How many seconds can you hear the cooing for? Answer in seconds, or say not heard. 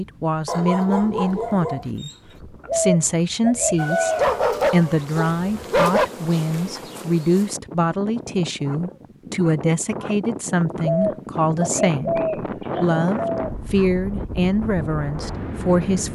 4 s.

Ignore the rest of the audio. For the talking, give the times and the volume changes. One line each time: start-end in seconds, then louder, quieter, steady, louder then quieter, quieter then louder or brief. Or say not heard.
0.0-16.0 steady.